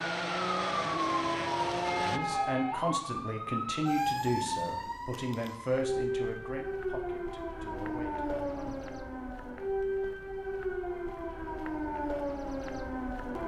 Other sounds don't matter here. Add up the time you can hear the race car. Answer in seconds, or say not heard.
2 s.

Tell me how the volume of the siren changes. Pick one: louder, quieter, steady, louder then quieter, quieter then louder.
steady.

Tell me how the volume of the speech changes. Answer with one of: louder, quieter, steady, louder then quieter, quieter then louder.
quieter.